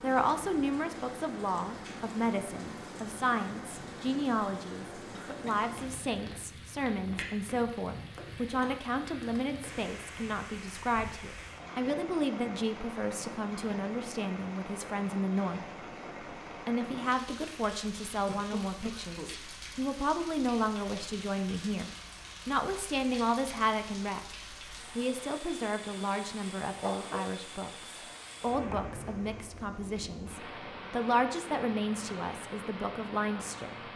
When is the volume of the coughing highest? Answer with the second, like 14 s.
27 s.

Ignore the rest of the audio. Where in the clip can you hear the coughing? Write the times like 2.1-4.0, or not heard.
5.1-5.6, 18.2-19.3, 26.8-27.4, 27.9-28.8.